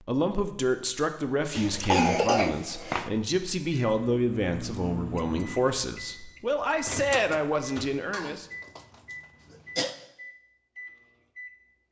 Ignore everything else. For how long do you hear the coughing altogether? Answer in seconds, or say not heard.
3 s.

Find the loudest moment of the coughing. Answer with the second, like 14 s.
2 s.